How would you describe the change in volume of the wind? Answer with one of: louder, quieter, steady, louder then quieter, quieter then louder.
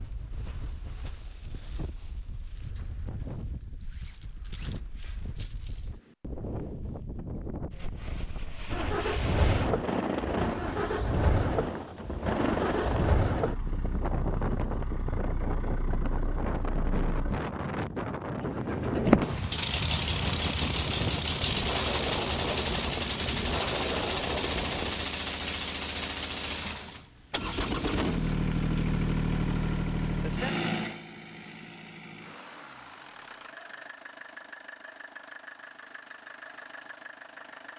louder.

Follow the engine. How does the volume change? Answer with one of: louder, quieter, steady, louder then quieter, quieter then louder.
quieter.